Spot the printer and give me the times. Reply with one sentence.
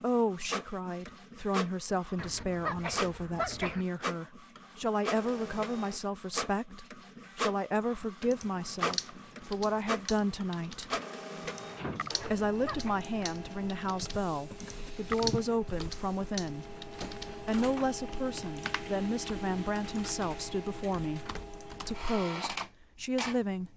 The printer can be heard from 0.0 to 23.6 s.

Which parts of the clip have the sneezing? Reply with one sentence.
You can hear the sneezing from 2.1 to 3.9 s and from 12.2 to 12.9 s.